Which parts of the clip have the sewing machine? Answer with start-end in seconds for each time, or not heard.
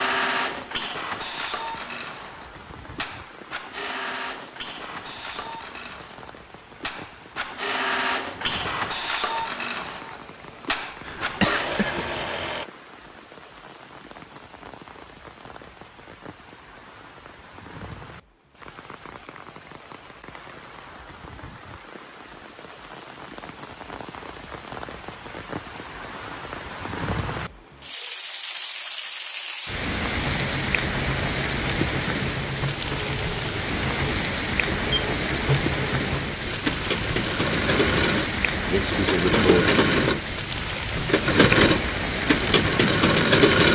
0.0-12.7, 30.1-43.6.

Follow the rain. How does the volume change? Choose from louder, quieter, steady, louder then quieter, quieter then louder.
louder.